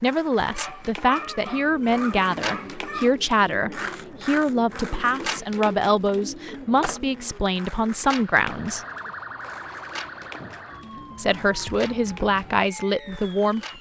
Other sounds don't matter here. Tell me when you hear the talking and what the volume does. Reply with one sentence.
The talking can be heard from 0.0 to 8.8 s, at a steady volume; and briefly from 11.2 to 13.7 s.